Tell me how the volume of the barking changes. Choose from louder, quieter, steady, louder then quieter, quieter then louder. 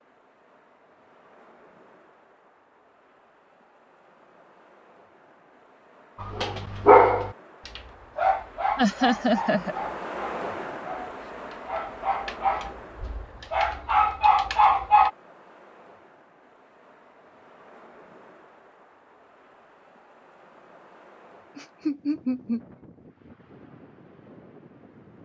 quieter then louder.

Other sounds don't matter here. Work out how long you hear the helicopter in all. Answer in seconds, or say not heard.
not heard.